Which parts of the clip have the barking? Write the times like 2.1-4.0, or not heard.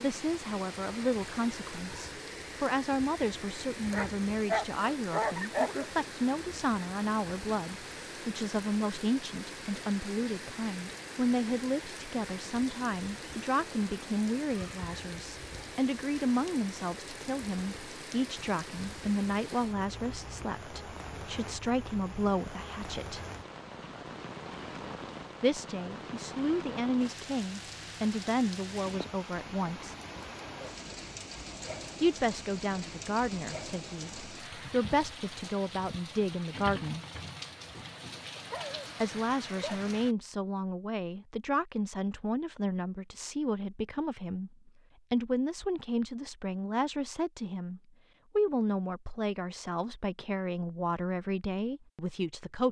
3.9-5.8, 38.4-39.8.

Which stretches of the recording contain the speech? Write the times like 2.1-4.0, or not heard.
0.0-23.2, 25.4-29.9, 32.0-37.0, 39.0-52.6.